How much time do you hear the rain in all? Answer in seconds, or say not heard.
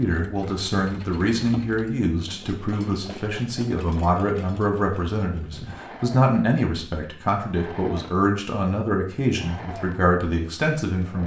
not heard.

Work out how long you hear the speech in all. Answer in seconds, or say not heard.
11 s.